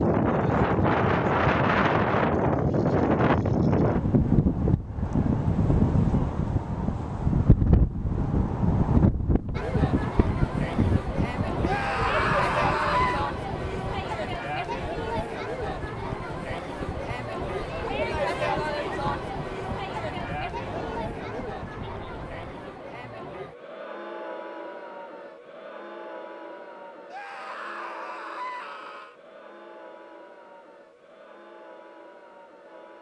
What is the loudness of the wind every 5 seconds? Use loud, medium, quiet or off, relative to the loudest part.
loud, loud, medium, quiet, quiet, off, off.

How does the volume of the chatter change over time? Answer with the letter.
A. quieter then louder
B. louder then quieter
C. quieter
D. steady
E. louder
C.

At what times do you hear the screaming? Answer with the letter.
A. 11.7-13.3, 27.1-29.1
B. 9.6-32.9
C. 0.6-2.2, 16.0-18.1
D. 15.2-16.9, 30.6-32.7
A.